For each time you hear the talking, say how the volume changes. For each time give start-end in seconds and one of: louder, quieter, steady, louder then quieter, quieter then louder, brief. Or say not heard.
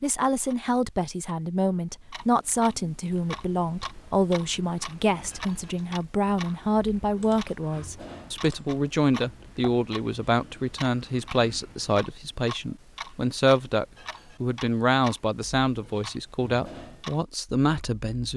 0.0-18.3 steady.